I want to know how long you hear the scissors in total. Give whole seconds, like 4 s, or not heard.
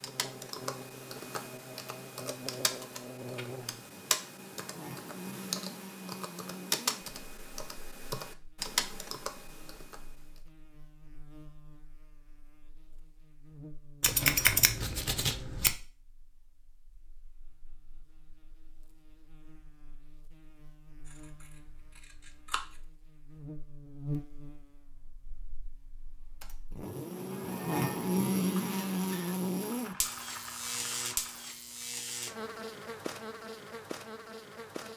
3 s.